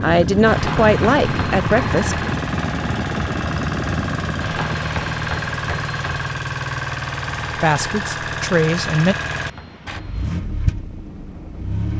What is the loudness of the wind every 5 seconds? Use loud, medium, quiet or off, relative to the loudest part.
loud, quiet, quiet.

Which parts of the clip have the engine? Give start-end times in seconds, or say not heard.
0.0-11.9.